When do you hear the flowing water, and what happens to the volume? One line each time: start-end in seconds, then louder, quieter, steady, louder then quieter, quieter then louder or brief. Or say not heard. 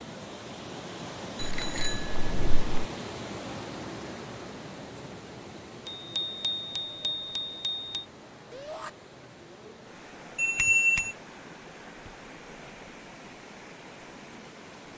0.0-14.9 quieter.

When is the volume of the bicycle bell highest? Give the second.
11 s.